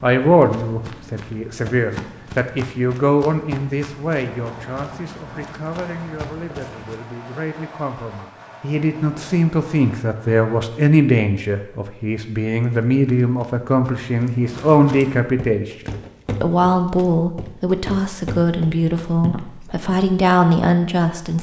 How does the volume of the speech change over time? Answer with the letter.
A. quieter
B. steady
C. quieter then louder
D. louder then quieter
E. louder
C.